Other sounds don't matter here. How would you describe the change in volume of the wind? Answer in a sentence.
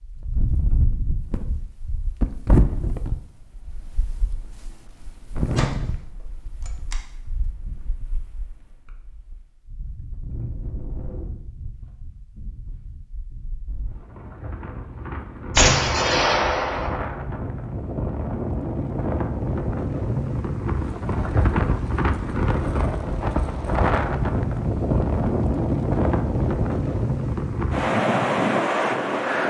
The volume of the wind goes down, then up.